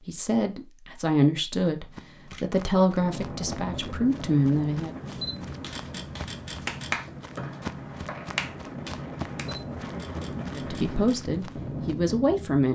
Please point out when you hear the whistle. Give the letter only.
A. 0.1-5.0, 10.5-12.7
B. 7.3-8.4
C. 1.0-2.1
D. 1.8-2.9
B.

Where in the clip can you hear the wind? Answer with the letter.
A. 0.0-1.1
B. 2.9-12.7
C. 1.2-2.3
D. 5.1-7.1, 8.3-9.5
B.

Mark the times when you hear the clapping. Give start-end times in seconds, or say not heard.
5.1-7.1, 8.3-9.5.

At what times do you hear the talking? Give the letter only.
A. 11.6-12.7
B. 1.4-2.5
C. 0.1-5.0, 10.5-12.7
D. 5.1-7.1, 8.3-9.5
C.